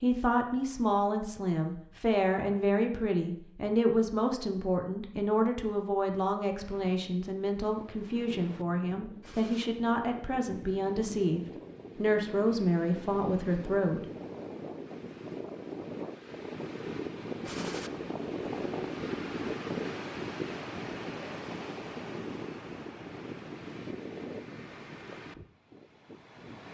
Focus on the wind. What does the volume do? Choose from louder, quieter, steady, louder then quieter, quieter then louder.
louder then quieter.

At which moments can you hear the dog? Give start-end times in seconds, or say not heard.
not heard.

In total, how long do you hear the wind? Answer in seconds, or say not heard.
20 s.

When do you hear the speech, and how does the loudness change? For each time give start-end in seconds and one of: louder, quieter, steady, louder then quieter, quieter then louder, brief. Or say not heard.
0.0-14.0 steady.